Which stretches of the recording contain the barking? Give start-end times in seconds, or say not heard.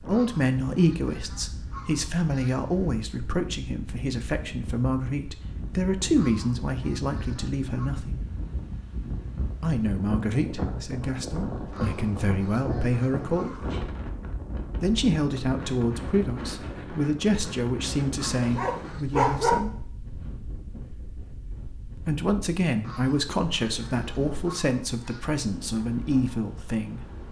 18.4-19.6.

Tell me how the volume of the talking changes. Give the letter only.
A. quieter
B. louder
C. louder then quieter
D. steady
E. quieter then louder
D.